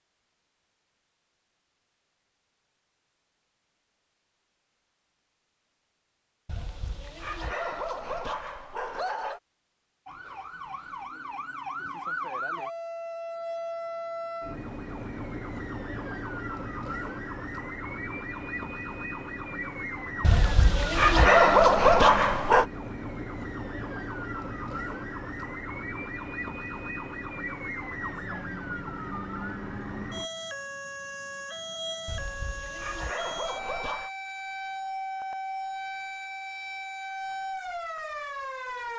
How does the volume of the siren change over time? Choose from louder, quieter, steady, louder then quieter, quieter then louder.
steady.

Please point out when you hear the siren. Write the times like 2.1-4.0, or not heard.
10.1-38.9.